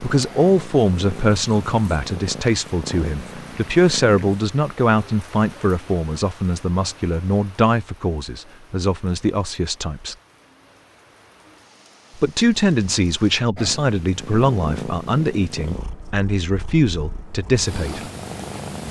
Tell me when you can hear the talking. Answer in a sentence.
The talking can be heard from 0.0 to 10.2 s and from 12.2 to 18.1 s.